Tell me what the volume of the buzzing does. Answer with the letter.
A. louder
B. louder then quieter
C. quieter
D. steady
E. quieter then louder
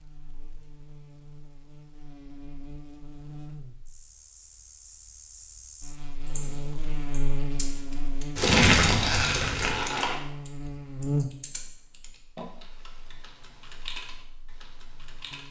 B.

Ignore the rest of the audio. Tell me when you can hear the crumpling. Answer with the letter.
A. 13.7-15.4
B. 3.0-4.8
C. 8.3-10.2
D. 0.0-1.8
C.